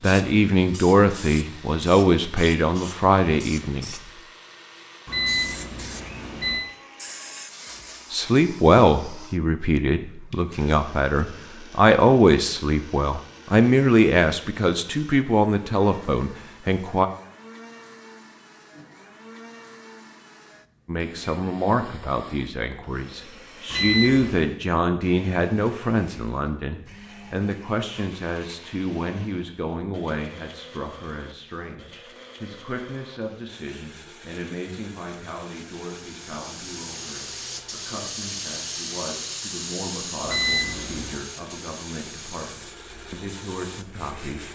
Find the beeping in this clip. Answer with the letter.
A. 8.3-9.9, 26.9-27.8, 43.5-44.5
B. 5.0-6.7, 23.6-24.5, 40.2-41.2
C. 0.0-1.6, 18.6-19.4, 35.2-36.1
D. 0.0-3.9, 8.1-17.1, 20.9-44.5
B.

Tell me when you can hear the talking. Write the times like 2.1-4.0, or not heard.
0.0-3.9, 8.1-17.1, 20.9-44.5.